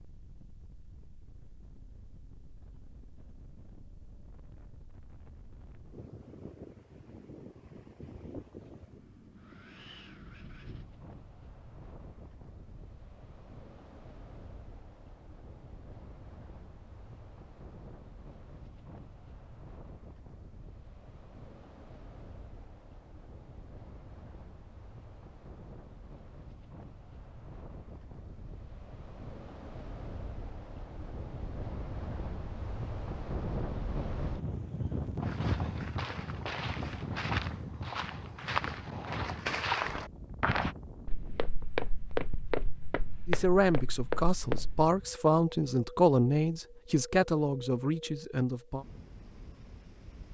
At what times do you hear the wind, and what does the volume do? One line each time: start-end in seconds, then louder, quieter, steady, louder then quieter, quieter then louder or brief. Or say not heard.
0.0-50.3 louder then quieter.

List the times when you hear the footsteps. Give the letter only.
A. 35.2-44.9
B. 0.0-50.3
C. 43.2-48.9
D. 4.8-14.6
A.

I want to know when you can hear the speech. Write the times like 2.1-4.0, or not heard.
43.2-48.9.